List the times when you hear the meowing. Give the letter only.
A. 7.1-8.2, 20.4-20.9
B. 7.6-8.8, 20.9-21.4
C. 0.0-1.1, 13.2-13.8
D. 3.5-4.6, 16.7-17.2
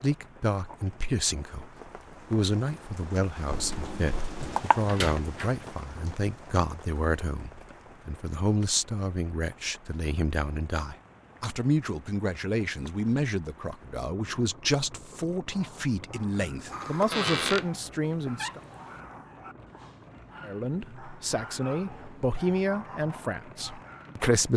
D.